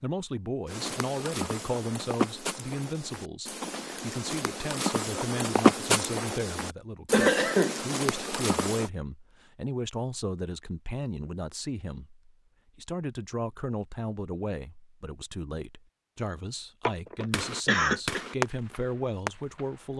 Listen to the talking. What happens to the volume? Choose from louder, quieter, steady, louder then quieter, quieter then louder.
steady.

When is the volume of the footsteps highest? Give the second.
6 s.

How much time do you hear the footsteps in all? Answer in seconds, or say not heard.
8 s.